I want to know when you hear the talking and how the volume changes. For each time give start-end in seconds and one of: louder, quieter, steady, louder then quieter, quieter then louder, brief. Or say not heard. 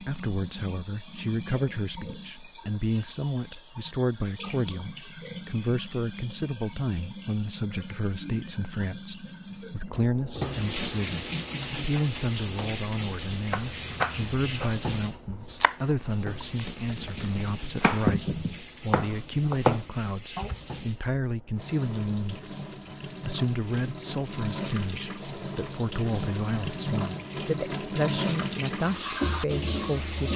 0.0-30.3 steady.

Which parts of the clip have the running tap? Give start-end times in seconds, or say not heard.
0.0-30.3.